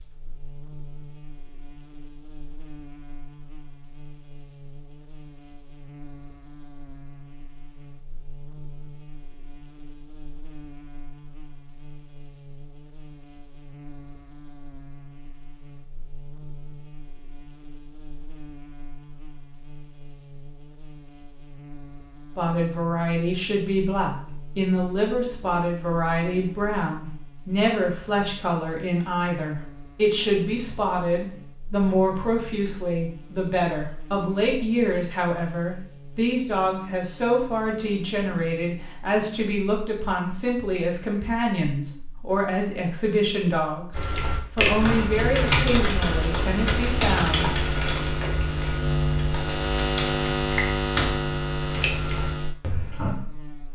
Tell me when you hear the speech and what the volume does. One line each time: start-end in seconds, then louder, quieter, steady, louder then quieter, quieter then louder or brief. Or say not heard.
22.4-47.5 steady.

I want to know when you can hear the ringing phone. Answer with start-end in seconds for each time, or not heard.
not heard.